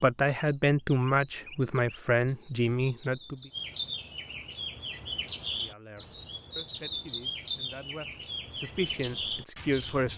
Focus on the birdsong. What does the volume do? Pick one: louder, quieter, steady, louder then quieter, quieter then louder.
louder.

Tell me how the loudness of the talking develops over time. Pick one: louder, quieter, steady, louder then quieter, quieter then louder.
quieter then louder.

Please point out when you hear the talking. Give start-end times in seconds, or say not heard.
0.0-3.5, 5.5-10.1.